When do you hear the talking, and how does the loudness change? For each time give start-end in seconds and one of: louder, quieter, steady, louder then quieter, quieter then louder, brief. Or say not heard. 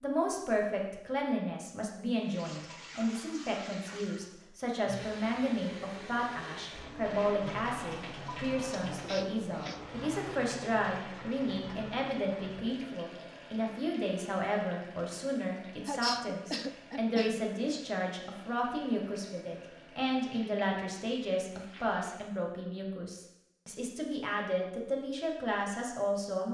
0.0-26.4 steady.